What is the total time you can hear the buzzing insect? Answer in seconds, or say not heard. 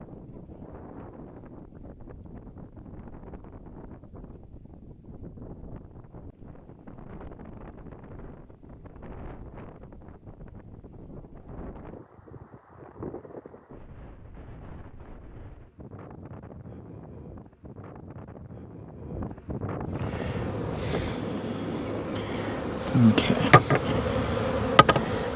5 s.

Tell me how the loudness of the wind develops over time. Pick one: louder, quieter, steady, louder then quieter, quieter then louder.
louder.